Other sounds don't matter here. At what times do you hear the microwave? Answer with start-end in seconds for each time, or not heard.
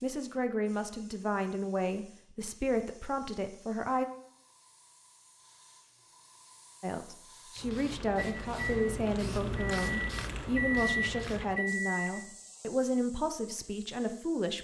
8.2-12.1.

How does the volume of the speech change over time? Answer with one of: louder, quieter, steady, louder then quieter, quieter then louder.
steady.